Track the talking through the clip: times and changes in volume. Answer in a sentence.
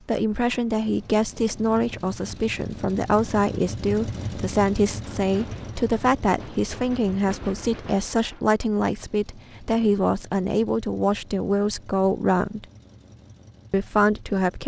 You can hear the talking from 0.1 to 12.7 s, at a steady volume; and briefly from 13.7 to 14.6 s.